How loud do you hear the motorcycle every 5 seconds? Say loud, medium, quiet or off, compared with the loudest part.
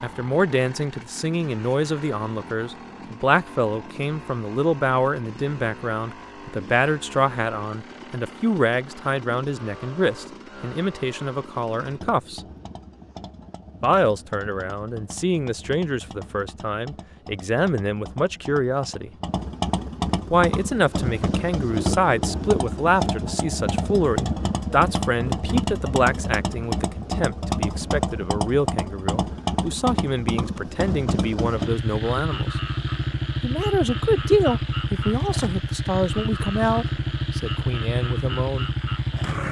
quiet, quiet, quiet, medium, loud, loud, loud, loud.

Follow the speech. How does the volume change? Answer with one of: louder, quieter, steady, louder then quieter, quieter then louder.
steady.